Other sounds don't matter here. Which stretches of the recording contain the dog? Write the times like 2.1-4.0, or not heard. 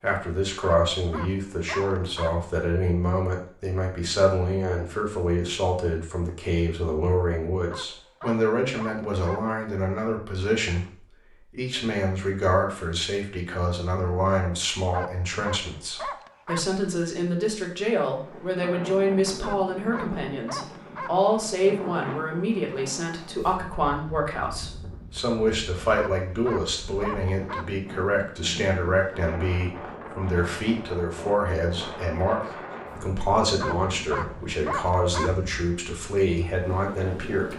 0.6-2.4, 7.7-9.4, 14.9-16.7, 19.4-21.2, 25.9-27.7, 33.6-35.4.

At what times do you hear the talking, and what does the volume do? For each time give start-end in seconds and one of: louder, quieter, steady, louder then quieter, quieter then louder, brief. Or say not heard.
0.0-37.5 steady.